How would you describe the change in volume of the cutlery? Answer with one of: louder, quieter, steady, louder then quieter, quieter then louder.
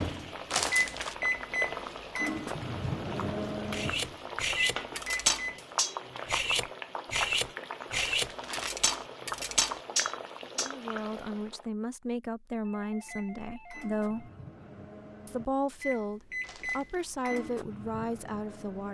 steady.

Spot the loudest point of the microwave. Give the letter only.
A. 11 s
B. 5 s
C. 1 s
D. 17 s
C.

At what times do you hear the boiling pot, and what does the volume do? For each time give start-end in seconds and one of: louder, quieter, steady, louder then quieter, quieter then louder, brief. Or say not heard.
0.0-11.7 steady.